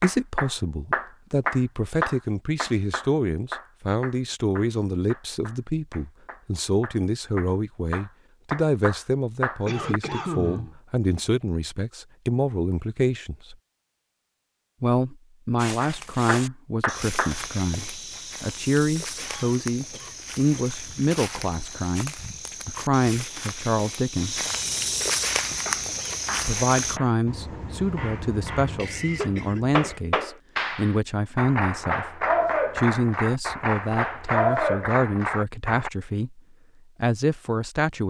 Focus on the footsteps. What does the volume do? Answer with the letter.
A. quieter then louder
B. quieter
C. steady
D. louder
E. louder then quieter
D.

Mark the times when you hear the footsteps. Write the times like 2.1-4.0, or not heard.
15.6-27.0.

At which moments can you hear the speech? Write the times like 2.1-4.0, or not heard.
0.0-13.6, 14.8-24.4, 26.4-36.4, 37.0-38.0.